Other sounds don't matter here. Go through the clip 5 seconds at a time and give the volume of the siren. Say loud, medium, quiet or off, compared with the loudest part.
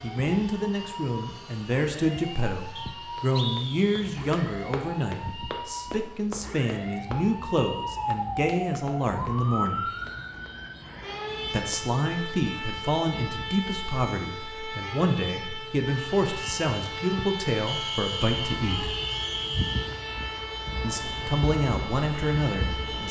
medium, loud, loud, loud, loud.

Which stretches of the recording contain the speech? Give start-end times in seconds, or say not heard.
0.0-9.9, 11.5-18.9, 20.8-23.0.